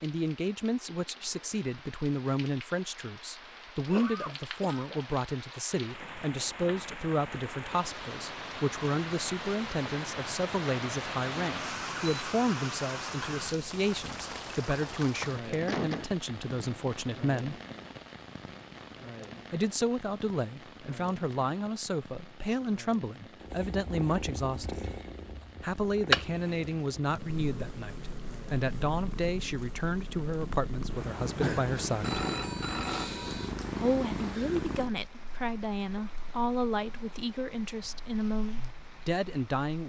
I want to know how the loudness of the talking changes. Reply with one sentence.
The volume of the talking stays about the same.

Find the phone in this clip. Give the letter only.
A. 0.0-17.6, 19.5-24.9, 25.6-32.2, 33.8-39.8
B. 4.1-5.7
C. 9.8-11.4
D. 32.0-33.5
D.